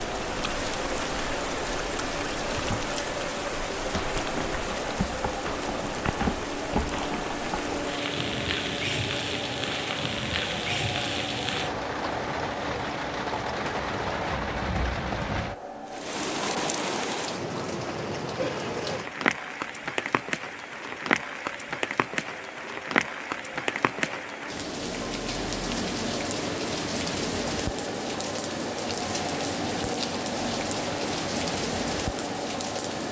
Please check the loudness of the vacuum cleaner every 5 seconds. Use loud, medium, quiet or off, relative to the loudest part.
loud, loud, loud, medium, medium, loud, loud.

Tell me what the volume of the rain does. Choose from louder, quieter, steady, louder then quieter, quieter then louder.
steady.